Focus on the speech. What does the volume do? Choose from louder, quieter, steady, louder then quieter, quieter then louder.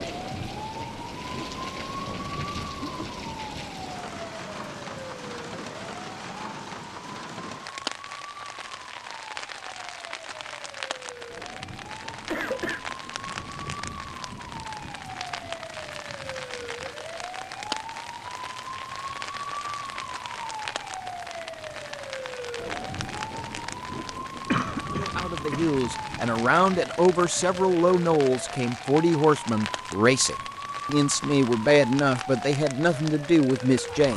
steady.